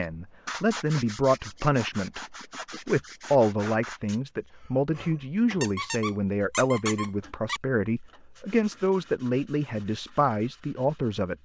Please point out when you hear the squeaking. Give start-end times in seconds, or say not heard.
5.6-7.6.